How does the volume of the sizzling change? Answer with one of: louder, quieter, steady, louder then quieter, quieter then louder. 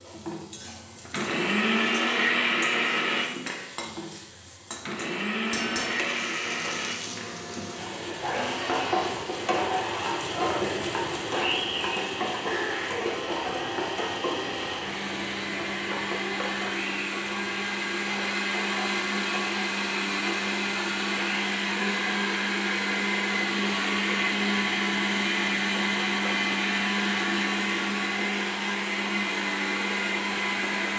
louder then quieter.